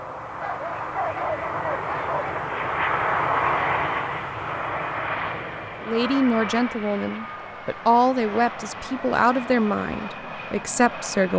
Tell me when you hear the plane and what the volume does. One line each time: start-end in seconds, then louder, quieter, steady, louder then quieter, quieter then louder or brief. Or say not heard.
0.0-11.3 louder then quieter.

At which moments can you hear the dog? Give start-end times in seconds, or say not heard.
0.4-2.4.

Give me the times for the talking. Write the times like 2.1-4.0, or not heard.
5.8-11.3.